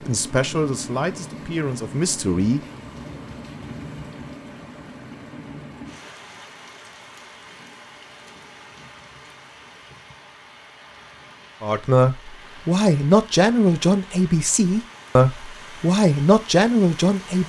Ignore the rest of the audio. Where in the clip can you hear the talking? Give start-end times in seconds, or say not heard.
0.1-2.6, 11.6-17.4.